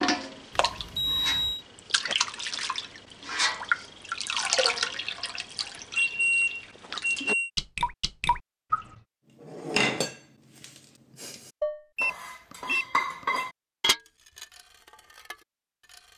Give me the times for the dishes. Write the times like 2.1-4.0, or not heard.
9.4-16.0.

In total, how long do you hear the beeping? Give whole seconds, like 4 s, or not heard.
4 s.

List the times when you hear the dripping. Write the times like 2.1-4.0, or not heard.
0.0-8.8.